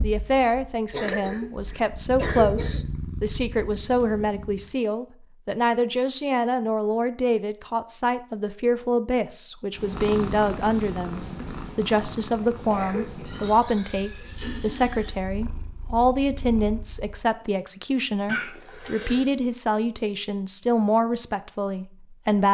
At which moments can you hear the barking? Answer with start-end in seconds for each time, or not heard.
not heard.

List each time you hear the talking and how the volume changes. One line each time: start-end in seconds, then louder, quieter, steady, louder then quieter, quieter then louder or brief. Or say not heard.
0.0-22.4 steady.